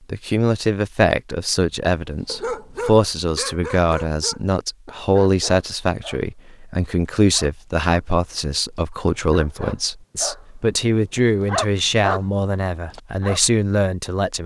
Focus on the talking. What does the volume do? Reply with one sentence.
The volume of the talking stays about the same.